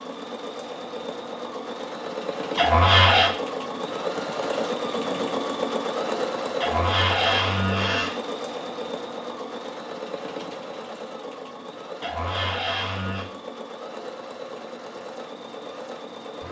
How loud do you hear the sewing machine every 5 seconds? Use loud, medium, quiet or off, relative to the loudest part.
loud, loud, medium, medium.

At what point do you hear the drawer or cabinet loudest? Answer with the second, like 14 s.
3 s.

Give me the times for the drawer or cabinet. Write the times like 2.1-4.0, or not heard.
2.5-3.3, 6.6-8.1, 12.0-13.2.